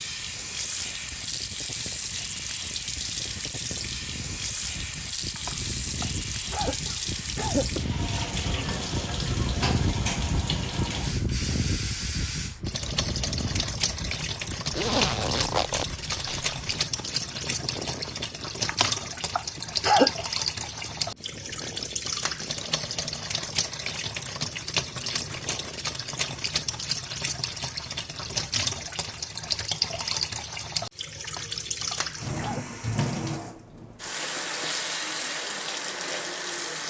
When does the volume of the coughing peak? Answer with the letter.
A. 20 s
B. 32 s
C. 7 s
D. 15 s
A.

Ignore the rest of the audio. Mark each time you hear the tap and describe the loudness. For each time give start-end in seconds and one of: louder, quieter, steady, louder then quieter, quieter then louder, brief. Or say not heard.
0.0-36.8 steady.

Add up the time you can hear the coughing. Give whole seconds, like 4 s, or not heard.
5 s.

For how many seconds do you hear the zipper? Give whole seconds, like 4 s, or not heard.
2 s.